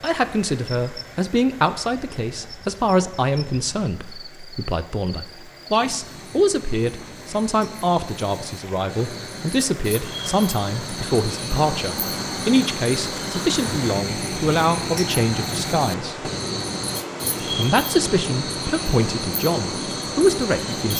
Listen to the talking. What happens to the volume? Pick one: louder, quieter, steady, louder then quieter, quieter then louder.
steady.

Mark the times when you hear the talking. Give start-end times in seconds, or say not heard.
0.0-16.3, 17.4-20.9.